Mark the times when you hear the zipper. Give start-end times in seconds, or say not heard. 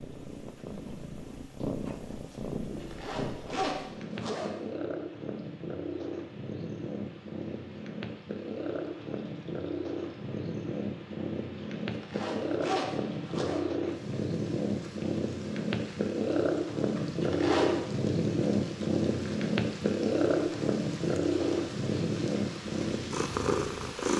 2.8-4.5, 11.9-13.6, 17.2-17.8.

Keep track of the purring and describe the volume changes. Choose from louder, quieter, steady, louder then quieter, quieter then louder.
louder.